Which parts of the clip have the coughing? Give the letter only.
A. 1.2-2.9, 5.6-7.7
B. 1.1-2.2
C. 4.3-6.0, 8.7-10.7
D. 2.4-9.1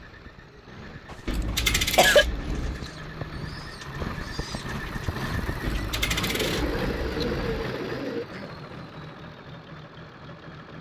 B.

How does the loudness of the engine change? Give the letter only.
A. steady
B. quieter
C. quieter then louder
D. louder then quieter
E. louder
D.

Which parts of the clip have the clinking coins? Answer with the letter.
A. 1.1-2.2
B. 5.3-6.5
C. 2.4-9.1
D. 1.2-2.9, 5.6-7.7
D.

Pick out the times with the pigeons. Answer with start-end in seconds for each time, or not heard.
2.4-9.1.